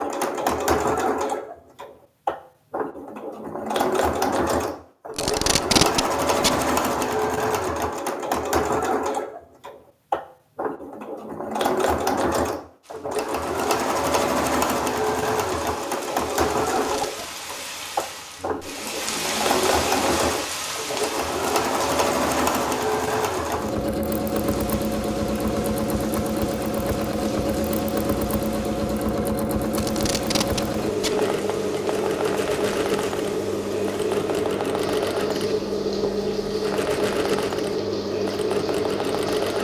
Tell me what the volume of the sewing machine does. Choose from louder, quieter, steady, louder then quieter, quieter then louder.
steady.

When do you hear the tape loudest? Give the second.
6 s.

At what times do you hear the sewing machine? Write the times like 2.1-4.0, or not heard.
0.0-39.5.